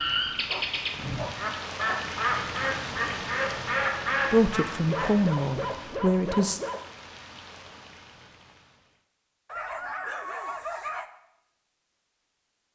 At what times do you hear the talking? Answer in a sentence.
The talking can be heard from 4.3 to 6.6 s.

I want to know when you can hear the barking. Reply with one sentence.
The barking can be heard from 0.5 to 2.0 s, from 4.8 to 6.8 s and from 9.4 to 11.1 s.